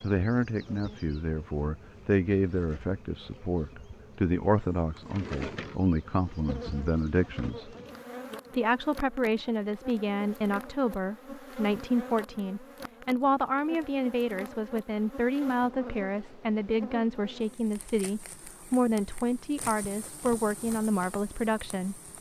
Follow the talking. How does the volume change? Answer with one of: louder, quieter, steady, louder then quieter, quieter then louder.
steady.